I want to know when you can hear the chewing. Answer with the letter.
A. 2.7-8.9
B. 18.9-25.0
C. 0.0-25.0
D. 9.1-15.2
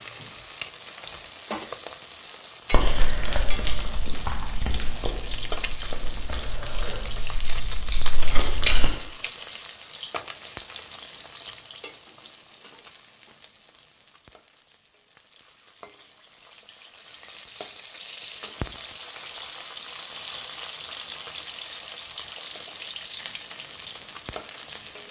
A.